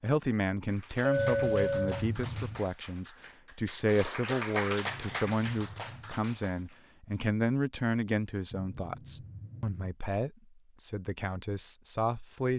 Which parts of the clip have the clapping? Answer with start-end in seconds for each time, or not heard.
0.7-6.8.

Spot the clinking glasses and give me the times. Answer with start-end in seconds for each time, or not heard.
1.0-2.0.